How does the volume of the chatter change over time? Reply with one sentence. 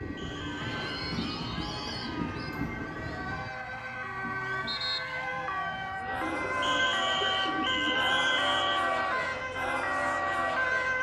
The volume of the chatter goes up.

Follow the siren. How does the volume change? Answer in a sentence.
The loudness of the siren goes up.